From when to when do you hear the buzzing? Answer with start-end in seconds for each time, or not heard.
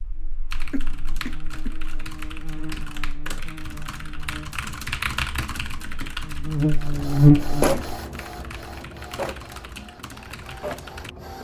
0.0-7.8.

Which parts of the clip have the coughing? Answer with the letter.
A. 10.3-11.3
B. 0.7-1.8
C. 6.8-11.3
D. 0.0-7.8
B.